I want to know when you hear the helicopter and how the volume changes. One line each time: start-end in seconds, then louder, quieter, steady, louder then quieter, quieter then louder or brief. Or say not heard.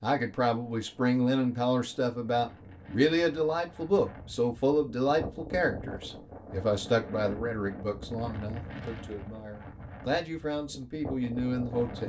not heard.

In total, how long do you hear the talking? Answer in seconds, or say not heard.
12 s.